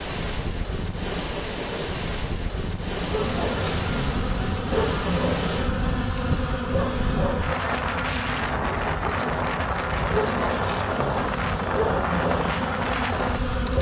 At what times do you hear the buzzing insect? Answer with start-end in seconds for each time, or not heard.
3.0-13.7.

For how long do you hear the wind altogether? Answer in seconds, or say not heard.
14 s.